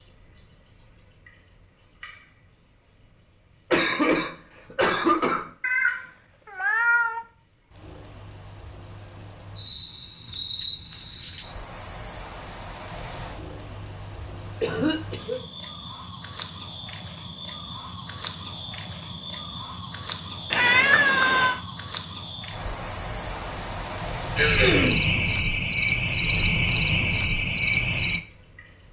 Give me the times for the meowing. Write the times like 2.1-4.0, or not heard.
5.6-7.2, 20.5-21.6.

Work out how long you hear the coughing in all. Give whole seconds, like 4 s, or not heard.
3 s.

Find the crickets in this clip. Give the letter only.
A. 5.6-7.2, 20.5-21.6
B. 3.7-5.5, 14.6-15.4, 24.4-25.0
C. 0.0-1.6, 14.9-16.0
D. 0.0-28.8
D.